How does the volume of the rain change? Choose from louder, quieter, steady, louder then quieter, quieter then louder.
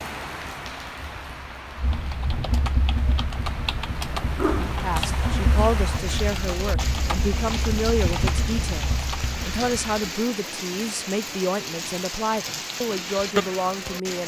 louder.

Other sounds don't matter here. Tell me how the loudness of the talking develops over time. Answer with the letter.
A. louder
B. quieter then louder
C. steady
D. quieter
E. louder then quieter
C.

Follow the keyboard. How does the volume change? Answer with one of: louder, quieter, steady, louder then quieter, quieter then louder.
steady.